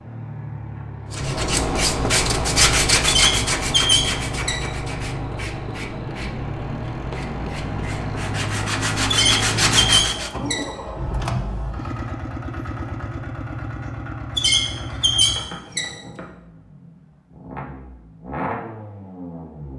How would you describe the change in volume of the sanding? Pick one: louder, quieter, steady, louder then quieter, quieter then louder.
quieter then louder.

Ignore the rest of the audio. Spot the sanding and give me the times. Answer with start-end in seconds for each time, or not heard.
1.1-10.3.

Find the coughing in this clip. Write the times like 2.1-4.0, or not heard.
not heard.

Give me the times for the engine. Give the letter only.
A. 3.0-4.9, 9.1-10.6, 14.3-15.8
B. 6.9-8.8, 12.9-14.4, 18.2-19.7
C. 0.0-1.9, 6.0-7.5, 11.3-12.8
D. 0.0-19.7
D.